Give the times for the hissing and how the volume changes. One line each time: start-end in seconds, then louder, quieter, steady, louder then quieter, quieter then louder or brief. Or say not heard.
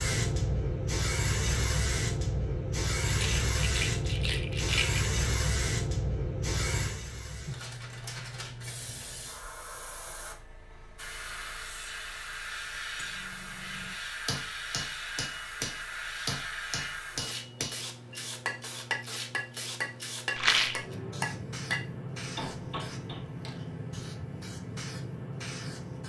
0.0-26.0 quieter.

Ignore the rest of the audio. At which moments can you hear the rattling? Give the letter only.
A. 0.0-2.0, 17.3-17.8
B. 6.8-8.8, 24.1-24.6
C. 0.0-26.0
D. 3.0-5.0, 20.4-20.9
D.